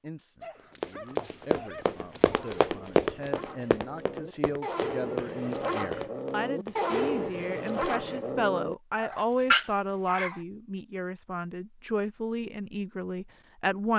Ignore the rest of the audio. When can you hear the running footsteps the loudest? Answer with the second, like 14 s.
3 s.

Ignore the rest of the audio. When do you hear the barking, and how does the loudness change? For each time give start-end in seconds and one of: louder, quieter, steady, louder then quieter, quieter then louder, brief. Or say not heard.
0.4-10.4 louder.